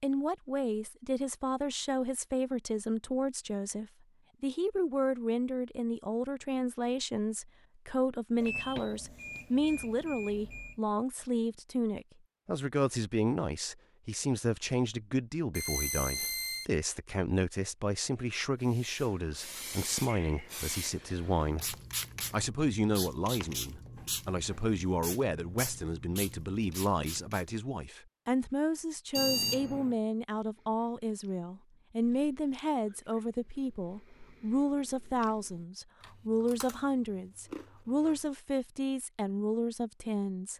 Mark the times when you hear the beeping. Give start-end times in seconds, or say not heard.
8.4-10.8, 15.6-16.6, 29.1-29.9.